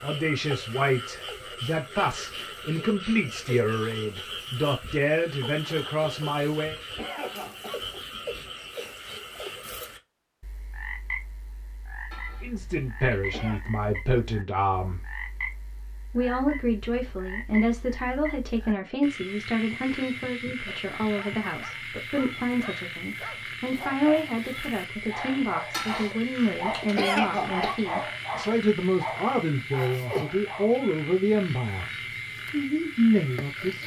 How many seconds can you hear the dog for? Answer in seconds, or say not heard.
10 s.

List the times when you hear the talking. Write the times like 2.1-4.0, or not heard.
0.0-6.8, 12.4-15.0, 16.1-31.9, 32.5-33.8.